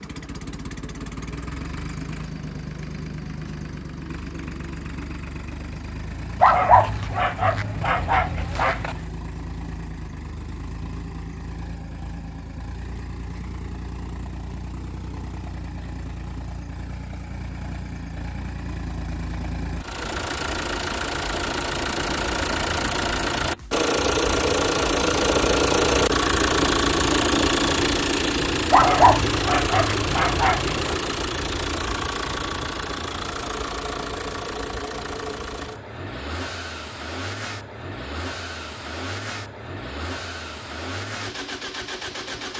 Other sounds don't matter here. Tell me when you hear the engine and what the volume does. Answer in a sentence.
You can hear the engine from 0.0 to 42.5 s, getting louder then quieter.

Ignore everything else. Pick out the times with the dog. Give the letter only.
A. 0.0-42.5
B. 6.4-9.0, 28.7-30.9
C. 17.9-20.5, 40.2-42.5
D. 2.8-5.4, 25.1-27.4
B.